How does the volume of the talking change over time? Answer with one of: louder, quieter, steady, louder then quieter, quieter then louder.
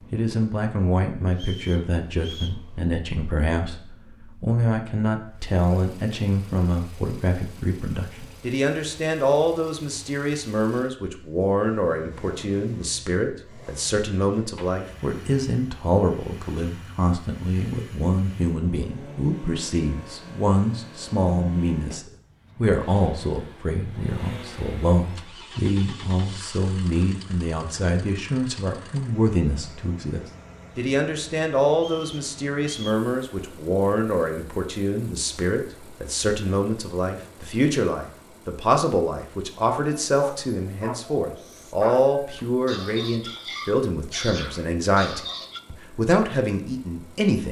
steady.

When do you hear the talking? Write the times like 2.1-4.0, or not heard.
0.1-47.4.